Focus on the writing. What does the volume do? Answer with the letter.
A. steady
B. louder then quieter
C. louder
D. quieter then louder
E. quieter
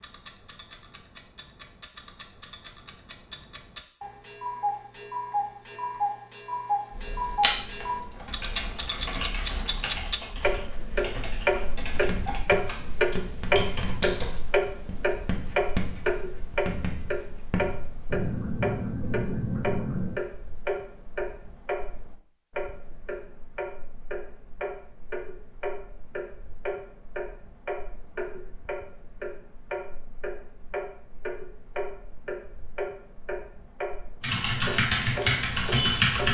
C.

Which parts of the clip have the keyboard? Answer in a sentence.
You can hear the keyboard from 6.9 to 14.4 s and from 34.2 to 36.2 s.